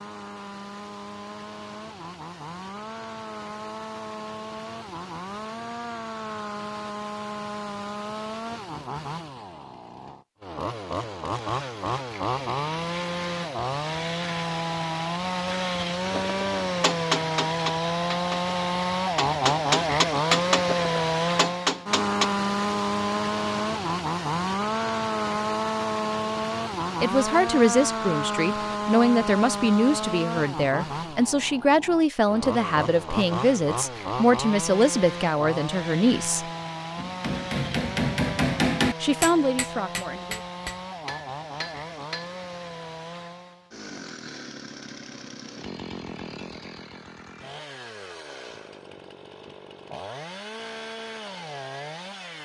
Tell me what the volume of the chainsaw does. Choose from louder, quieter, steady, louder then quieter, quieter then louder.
louder then quieter.